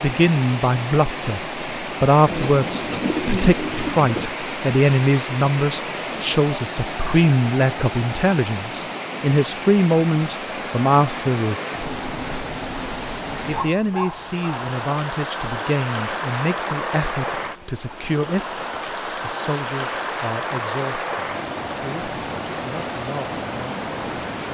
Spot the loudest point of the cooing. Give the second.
3 s.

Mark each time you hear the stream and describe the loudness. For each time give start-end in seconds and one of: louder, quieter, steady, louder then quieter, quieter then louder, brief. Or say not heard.
0.0-24.4 steady.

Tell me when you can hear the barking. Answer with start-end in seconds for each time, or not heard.
13.5-14.7.